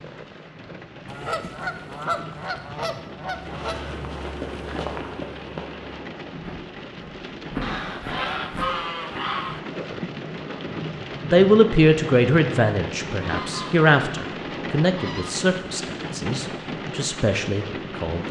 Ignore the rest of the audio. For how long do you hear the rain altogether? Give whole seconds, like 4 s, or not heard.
18 s.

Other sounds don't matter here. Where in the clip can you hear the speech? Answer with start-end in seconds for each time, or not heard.
11.2-18.2.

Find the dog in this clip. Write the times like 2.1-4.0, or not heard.
not heard.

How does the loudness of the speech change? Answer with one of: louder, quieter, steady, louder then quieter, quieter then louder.
quieter.